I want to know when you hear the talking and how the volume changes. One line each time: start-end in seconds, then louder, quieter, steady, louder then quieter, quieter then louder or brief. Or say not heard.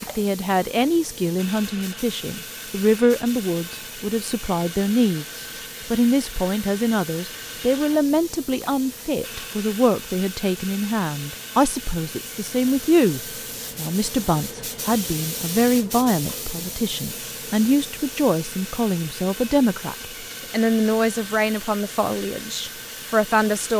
0.0-23.7 steady.